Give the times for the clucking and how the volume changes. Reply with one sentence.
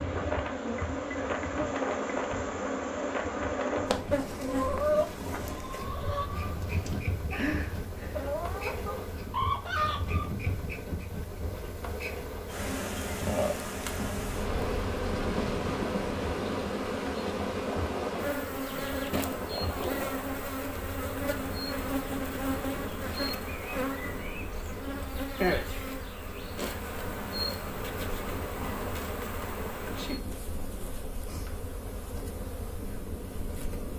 The clucking can be heard from 4.4 to 10.3 s, getting quieter then louder.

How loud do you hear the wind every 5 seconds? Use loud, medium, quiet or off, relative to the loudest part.
loud, medium, medium, loud, medium, medium, medium.